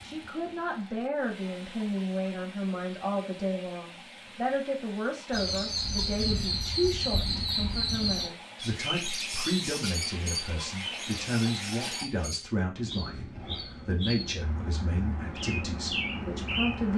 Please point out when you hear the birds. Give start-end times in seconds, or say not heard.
5.3-16.9.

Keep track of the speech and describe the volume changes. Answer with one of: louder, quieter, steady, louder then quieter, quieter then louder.
steady.